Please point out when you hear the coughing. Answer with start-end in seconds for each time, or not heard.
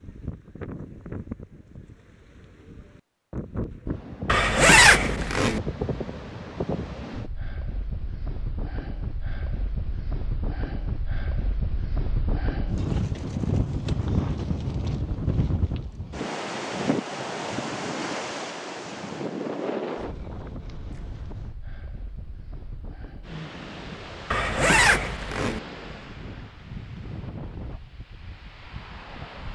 not heard.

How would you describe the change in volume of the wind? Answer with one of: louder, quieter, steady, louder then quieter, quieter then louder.
louder then quieter.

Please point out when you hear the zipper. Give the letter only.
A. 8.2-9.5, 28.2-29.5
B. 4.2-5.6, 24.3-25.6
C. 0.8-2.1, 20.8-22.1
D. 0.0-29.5
B.